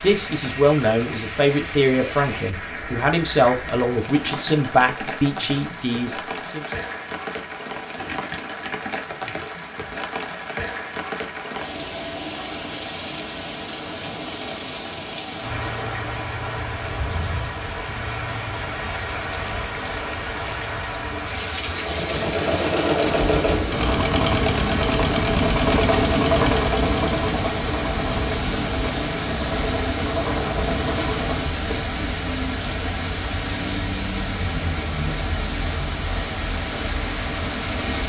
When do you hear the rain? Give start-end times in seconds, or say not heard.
0.0-38.0.